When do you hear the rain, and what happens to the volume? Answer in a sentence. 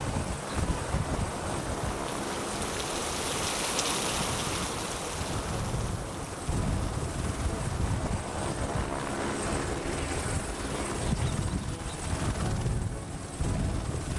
The rain can be heard from 0.1 to 8.0 s, getting louder then quieter.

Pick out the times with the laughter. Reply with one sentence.
You can't hear the laughter here.